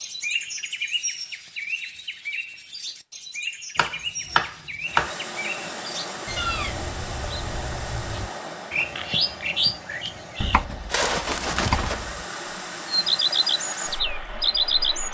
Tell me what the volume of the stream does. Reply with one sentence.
The volume of the stream goes down, then up.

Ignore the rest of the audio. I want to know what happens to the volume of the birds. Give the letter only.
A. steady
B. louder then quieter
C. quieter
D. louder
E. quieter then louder
D.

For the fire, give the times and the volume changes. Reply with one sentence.
You can't hear the fire here.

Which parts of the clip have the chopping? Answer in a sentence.
You can hear the chopping from 3.8 to 5.2 s and from 10.4 to 12.2 s.